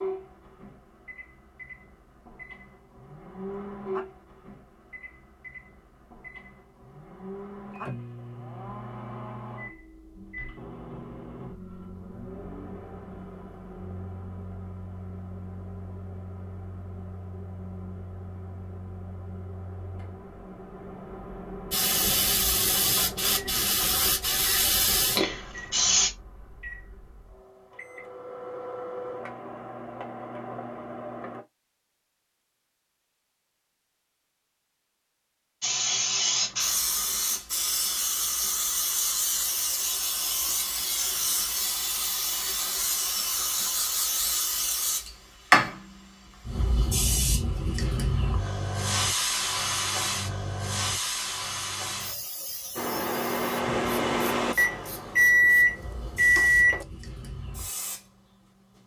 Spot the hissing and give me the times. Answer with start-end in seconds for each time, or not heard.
21.7-26.1, 35.6-58.8.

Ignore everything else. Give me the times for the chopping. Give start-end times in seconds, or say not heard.
not heard.